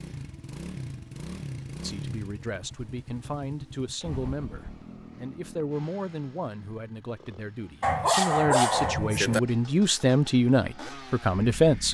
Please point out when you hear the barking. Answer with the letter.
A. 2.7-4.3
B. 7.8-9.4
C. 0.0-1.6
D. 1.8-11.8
B.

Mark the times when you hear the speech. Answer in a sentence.
The speech can be heard from 1.8 to 11.8 s.